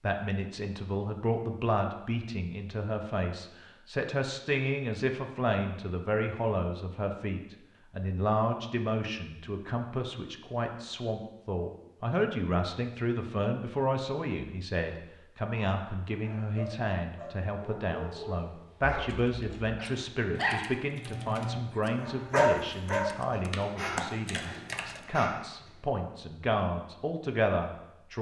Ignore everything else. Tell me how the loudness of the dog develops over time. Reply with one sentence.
The volume of the dog goes up, then down.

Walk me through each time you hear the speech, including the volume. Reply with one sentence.
You can hear the speech from 0.0 to 28.1 s, at a steady volume.